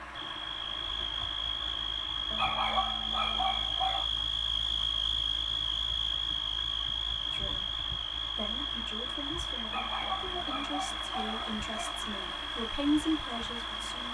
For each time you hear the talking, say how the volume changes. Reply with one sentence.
You can hear the talking from 7.3 to 14.0 s, getting louder.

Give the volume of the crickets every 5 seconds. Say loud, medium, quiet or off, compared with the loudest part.
loud, loud, medium.